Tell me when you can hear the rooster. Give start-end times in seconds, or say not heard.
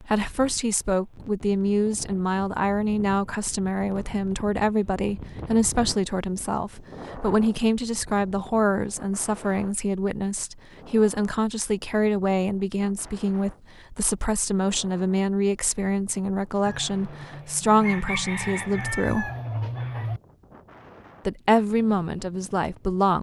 16.6-20.2.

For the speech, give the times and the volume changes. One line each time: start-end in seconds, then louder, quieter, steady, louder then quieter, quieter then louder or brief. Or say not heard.
0.0-19.3 steady
21.2-23.1 brief.